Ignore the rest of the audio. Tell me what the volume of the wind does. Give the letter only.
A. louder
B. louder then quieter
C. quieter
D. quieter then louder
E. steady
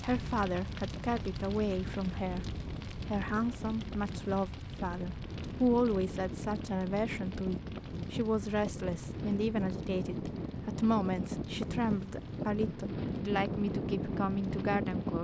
A.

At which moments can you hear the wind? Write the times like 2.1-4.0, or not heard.
0.2-15.1.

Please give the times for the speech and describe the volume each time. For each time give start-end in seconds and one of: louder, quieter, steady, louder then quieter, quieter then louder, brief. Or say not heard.
0.0-2.5 brief
3.0-15.1 steady.